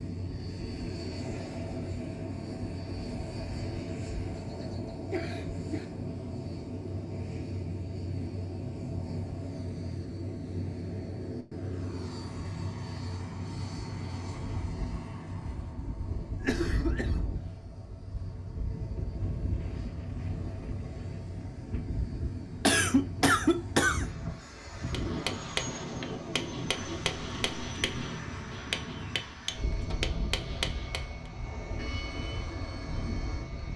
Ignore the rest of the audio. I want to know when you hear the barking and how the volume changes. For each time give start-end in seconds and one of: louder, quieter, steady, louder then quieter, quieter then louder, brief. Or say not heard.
not heard.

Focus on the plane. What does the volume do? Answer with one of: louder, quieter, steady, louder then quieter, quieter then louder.
steady.